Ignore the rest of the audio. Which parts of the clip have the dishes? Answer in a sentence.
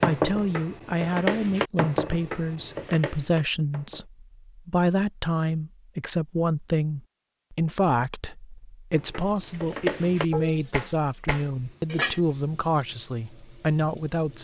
The dishes can be heard from 0.0 to 4.0 s and from 8.9 to 12.2 s.